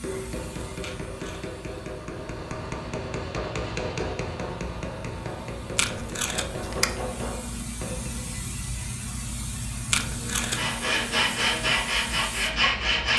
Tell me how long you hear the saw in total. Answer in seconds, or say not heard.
3 s.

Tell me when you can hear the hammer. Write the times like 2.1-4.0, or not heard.
0.0-8.4.